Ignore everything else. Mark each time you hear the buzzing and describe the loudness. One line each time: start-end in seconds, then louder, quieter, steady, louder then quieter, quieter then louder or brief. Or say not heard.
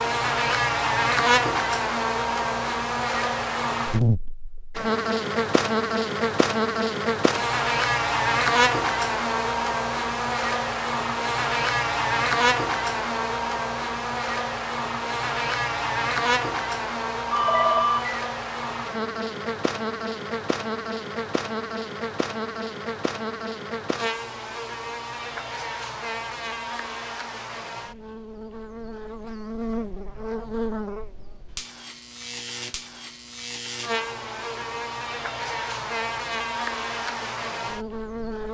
0.0-38.4 quieter.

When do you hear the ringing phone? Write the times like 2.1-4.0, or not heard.
17.3-18.1.